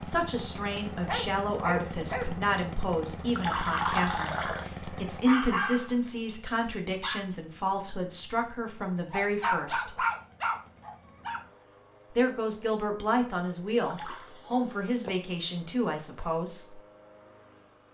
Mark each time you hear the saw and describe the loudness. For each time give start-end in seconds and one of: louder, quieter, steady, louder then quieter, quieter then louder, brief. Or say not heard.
not heard.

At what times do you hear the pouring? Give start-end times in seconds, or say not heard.
3.1-4.7, 13.8-14.3.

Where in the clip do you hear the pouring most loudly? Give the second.
4 s.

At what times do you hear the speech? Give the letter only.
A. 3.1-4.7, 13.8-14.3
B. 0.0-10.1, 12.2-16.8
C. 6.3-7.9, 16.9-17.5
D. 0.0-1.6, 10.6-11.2
B.